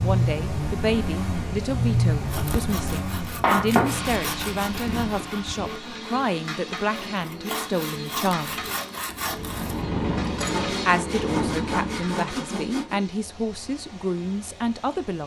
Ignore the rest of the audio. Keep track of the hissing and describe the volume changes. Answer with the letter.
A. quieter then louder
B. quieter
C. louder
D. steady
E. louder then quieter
E.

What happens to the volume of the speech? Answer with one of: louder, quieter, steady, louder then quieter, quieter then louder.
steady.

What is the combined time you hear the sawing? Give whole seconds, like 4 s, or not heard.
11 s.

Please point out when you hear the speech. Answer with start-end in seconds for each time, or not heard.
0.0-8.7, 10.8-15.2.